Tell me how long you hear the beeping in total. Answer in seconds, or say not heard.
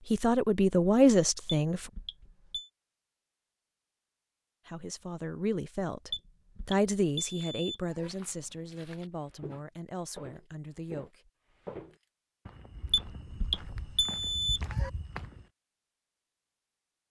5 s.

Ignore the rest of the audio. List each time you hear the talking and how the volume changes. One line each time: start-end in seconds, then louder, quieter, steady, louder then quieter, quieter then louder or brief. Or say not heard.
0.1-1.9 brief
4.7-11.3 louder then quieter.